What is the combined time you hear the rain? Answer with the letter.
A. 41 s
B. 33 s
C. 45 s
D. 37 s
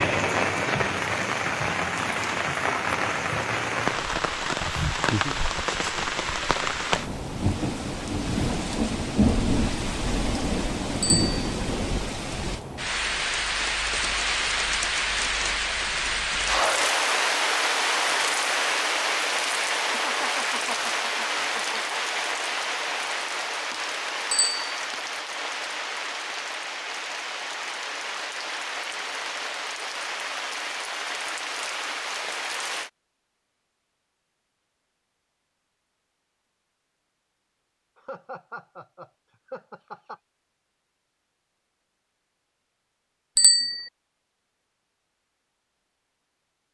B.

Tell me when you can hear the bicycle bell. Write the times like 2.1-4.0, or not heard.
11.0-11.5, 24.3-24.8, 43.4-43.9.